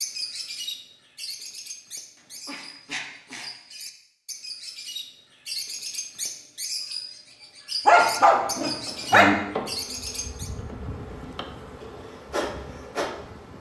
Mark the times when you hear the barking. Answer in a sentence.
You can hear the barking from 2.5 to 3.5 s and from 7.8 to 9.3 s.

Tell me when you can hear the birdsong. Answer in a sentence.
The birdsong can be heard from 0.0 to 10.5 s.